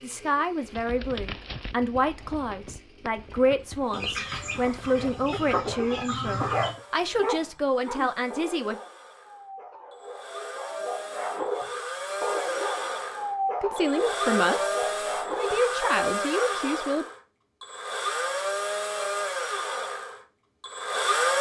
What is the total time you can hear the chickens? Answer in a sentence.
The chickens can be heard for 3 seconds in total.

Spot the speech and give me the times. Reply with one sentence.
You can hear the speech from 0.0 to 8.8 s and from 13.6 to 17.1 s.